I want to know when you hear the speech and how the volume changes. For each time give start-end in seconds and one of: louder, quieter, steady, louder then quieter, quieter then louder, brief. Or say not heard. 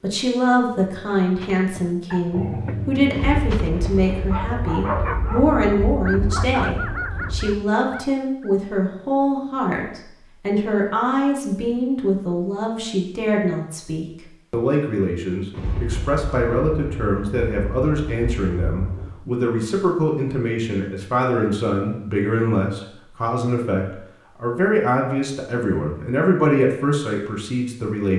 0.0-28.1 steady.